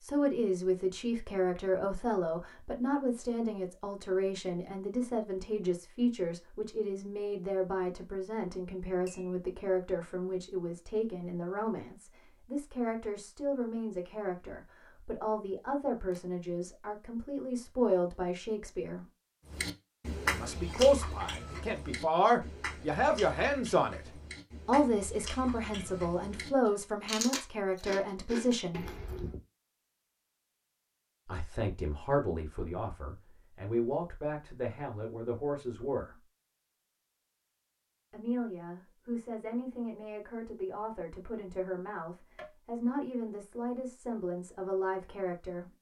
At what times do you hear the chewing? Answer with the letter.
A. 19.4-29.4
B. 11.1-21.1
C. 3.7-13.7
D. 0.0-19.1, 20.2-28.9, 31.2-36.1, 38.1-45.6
A.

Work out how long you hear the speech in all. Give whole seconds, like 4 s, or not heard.
40 s.